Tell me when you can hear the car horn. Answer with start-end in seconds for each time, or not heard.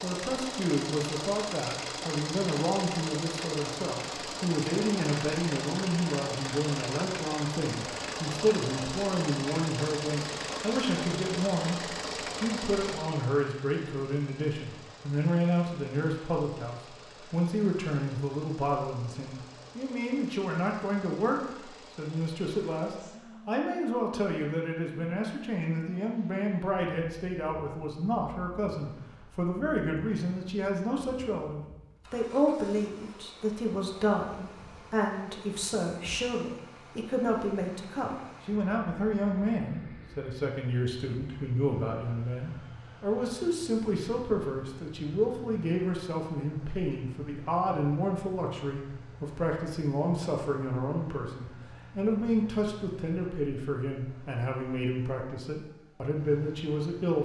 not heard.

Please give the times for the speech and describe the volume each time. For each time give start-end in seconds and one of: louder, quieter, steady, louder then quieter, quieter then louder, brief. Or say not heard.
0.0-57.1 steady.